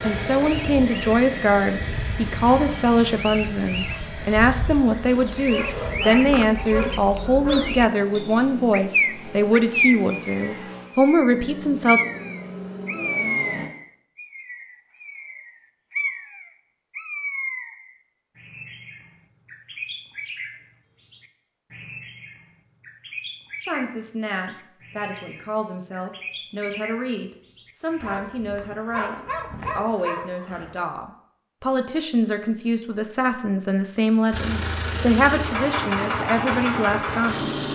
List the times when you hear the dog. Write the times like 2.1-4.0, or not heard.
5.5-7.8, 28.0-30.8.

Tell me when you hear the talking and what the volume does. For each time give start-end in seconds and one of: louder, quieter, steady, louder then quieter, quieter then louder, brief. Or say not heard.
0.0-12.0 steady
23.6-37.5 louder.